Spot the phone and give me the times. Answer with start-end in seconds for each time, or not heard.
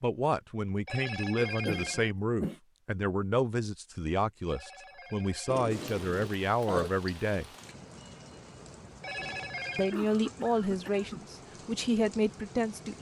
0.8-2.1, 4.5-5.7, 9.0-10.0.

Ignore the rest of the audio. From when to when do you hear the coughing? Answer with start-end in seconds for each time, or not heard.
1.4-2.5, 5.5-6.9, 9.4-11.2.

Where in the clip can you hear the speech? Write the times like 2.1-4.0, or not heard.
0.0-7.5, 9.8-12.9.